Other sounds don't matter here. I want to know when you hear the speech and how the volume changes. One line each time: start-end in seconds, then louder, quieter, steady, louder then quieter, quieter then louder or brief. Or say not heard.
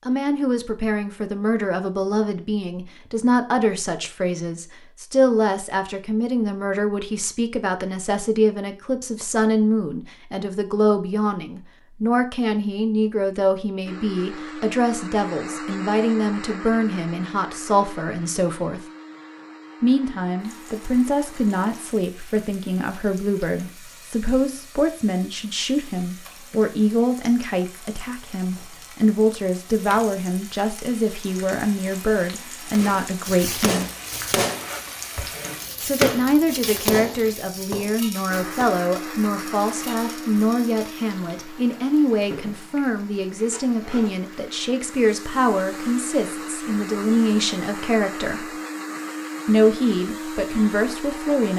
0.1-18.8 steady
19.8-33.9 steady
35.8-48.5 steady
49.5-51.5 brief.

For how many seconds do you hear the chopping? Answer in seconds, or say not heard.
6 s.